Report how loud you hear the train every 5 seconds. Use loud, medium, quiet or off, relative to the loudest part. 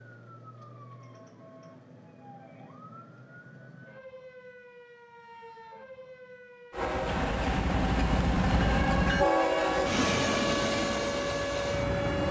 off, loud, loud.